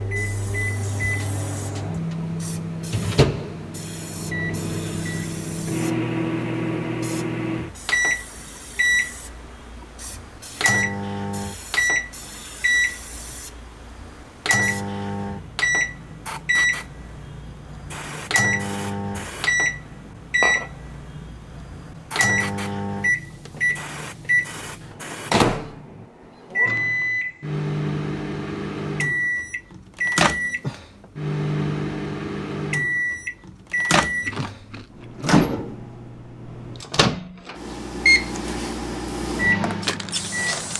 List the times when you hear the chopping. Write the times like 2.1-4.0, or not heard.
not heard.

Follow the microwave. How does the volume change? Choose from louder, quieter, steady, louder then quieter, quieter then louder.
steady.